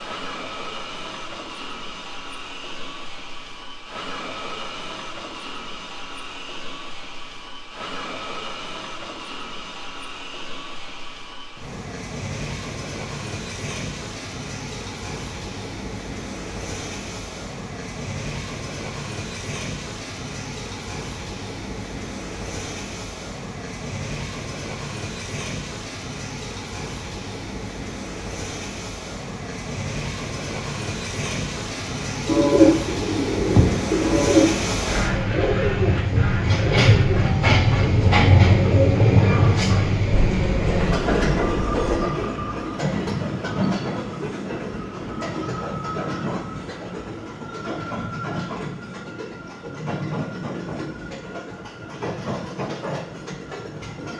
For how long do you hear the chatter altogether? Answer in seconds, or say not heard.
not heard.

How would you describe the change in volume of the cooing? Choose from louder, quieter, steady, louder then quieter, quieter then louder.
quieter.